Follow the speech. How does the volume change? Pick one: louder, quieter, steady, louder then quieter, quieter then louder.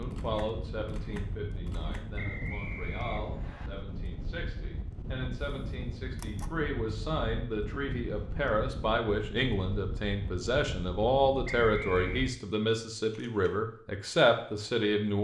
louder.